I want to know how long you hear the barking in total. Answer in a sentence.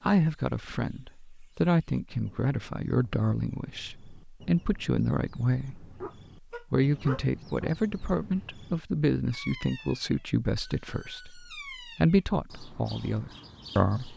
The barking can be heard for 2 seconds in total.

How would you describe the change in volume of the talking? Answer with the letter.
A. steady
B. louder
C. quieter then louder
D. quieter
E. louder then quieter
A.